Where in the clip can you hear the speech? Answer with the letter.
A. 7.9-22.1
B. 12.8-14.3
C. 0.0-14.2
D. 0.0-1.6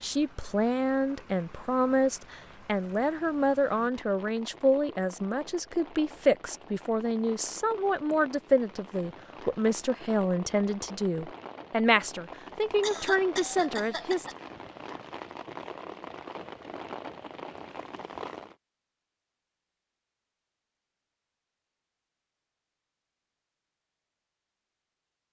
C.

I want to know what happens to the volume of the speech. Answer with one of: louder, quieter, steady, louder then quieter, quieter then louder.
steady.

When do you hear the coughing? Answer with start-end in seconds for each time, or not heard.
12.8-14.3.